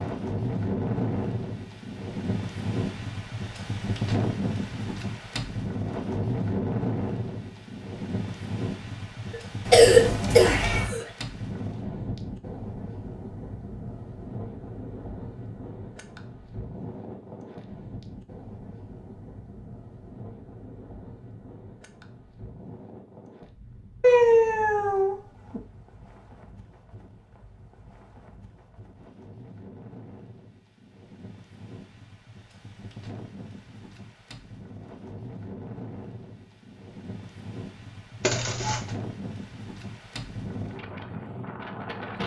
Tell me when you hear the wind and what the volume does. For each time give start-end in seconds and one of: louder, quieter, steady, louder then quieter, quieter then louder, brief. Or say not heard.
0.0-42.2 quieter then louder.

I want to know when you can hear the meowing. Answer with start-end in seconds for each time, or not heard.
9.7-10.9, 24.0-25.6.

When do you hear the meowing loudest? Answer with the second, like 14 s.
24 s.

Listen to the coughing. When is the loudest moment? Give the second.
10 s.